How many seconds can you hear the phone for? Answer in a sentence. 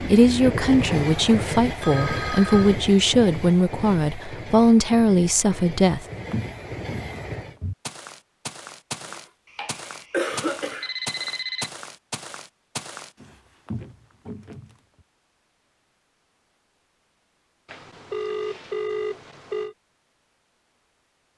You can hear the phone for 5 seconds altogether.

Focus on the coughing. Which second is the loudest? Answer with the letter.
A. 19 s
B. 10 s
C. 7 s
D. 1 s
B.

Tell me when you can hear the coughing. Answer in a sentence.
The coughing can be heard from 9.0 to 10.9 s.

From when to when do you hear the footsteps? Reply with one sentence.
The footsteps can be heard from 6.3 to 14.8 s.